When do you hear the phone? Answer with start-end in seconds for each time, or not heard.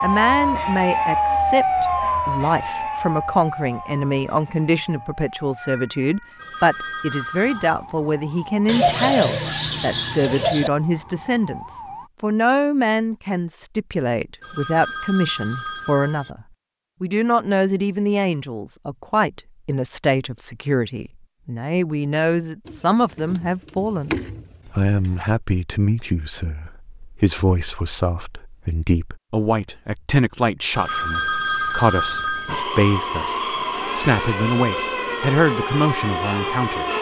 6.3-7.8, 14.4-16.4, 30.7-32.6.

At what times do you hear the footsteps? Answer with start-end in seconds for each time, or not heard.
not heard.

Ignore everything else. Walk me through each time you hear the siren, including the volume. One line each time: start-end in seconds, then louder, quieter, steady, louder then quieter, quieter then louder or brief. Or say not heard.
0.0-12.1 quieter
32.5-36.9 steady.